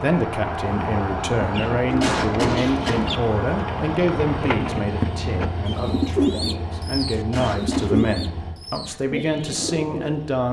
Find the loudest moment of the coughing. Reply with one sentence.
The loudest moment of the coughing is at 2 seconds.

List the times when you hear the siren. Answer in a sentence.
You can hear the siren from 0.0 to 4.5 s.